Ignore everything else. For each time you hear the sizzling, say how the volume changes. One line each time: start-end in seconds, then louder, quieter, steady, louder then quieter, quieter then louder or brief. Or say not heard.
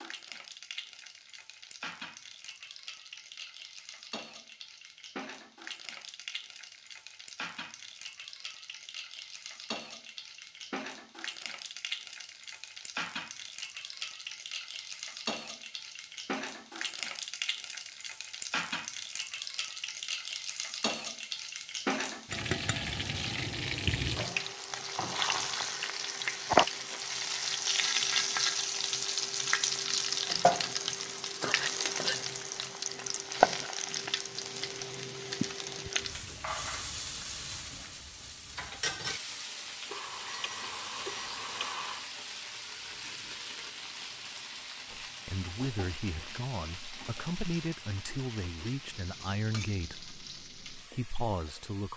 0.0-51.9 louder then quieter.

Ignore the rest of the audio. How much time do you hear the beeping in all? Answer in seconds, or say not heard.
2 s.